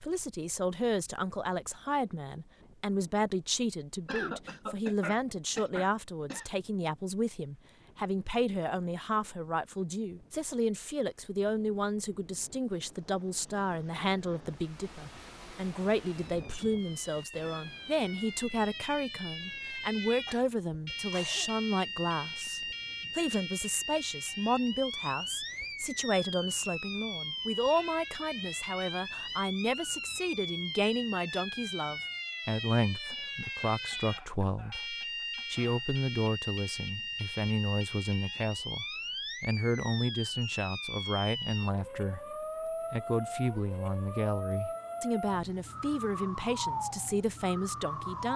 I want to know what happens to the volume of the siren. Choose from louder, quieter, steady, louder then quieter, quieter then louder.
steady.